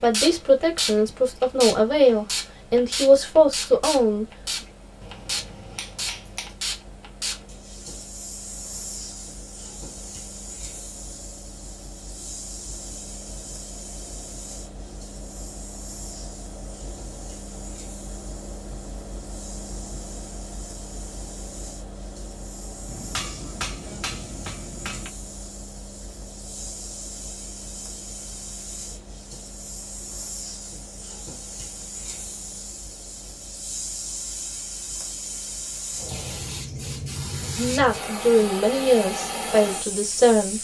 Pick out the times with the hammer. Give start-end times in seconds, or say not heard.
5.0-6.5, 22.9-25.1.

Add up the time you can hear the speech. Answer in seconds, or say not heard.
7 s.